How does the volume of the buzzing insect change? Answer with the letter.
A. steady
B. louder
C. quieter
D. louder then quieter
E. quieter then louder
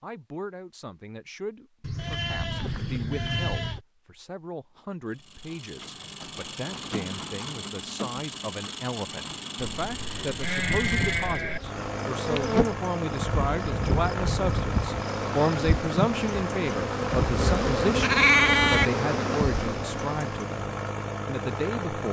A.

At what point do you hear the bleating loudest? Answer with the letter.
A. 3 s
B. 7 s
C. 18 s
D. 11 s
C.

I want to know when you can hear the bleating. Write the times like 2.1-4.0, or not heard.
1.8-3.8, 9.8-11.6, 17.1-18.9.